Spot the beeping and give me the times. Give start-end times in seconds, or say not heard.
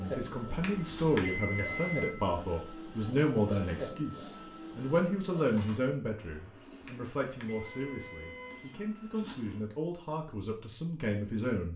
0.6-2.1, 6.8-8.8.